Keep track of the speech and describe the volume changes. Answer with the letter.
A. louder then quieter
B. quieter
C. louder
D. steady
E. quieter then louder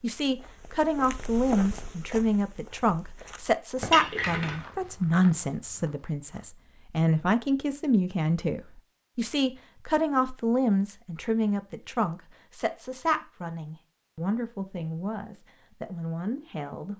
B.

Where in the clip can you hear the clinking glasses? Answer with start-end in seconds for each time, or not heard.
3.8-4.7.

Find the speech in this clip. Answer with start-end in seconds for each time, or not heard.
0.0-16.9.